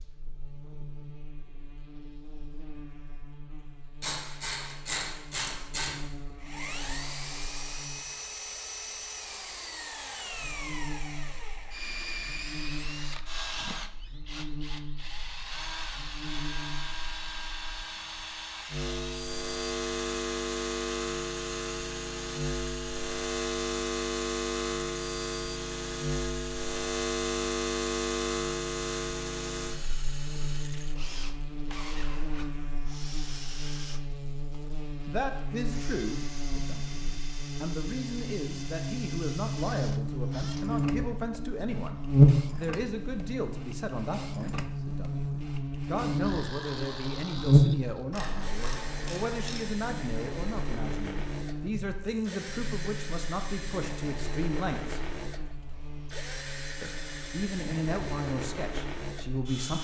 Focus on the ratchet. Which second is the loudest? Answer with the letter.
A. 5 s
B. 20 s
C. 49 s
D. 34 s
A.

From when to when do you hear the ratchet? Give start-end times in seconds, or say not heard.
4.0-6.0, 48.1-49.7.